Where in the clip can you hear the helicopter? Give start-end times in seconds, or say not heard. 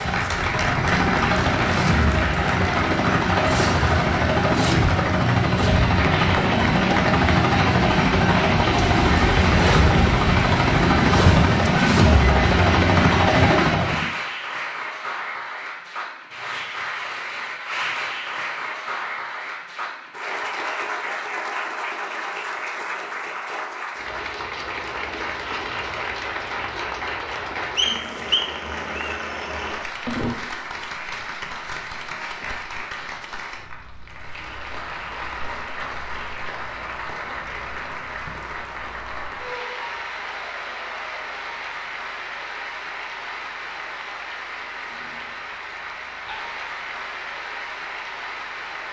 0.0-14.1.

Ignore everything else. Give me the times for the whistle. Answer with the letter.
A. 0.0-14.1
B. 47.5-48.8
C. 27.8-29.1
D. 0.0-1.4
C.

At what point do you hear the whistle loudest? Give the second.
28 s.